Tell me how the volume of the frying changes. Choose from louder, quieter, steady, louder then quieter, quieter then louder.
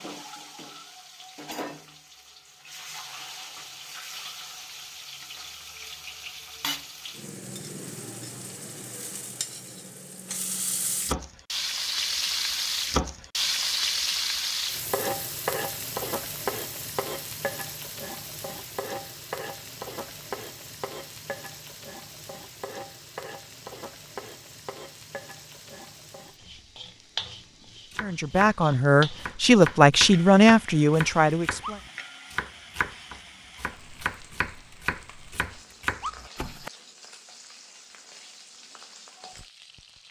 louder then quieter.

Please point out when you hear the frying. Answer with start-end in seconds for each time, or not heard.
0.0-40.0.